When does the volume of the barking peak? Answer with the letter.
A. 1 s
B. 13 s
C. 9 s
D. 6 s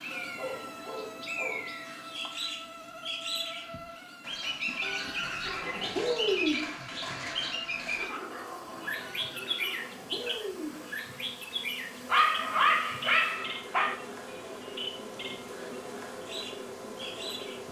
B.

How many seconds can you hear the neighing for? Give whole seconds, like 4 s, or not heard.
4 s.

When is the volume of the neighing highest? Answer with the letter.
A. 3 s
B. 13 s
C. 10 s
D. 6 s
D.